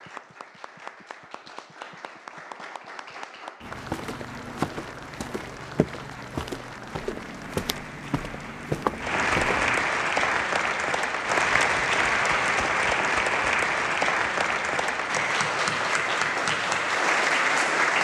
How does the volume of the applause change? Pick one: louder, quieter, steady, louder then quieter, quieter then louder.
louder.